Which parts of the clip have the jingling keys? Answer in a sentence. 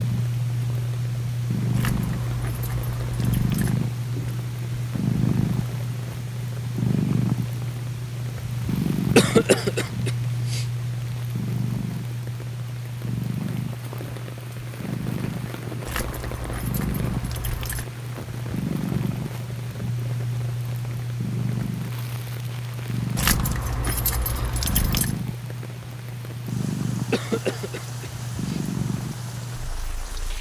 The jingling keys can be heard from 1.7 to 3.8 s, from 15.8 to 17.9 s and from 23.1 to 25.1 s.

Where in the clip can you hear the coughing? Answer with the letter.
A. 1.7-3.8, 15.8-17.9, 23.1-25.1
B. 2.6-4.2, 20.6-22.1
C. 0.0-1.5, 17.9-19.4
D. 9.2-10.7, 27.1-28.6
D.